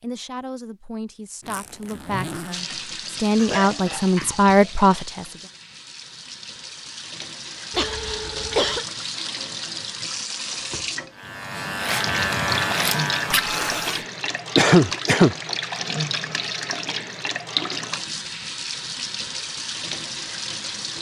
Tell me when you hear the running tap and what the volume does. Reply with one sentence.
You can hear the running tap from 2.5 to 20.9 s, getting louder.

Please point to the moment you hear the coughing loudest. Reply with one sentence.
The loudest moment of the coughing is at 15 seconds.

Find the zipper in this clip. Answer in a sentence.
You can hear the zipper from 1.4 to 2.6 s and from 13.3 to 14.1 s.